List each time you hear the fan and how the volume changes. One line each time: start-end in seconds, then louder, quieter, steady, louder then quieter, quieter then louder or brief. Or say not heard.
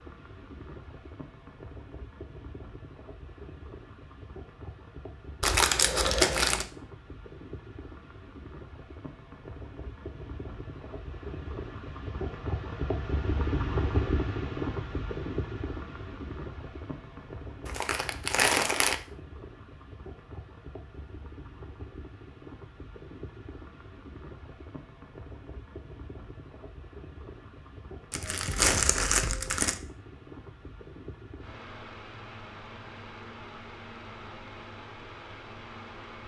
0.0-36.2 louder then quieter.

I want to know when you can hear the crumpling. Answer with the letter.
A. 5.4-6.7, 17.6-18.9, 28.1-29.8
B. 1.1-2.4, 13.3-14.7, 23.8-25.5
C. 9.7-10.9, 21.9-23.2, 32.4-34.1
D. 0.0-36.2
A.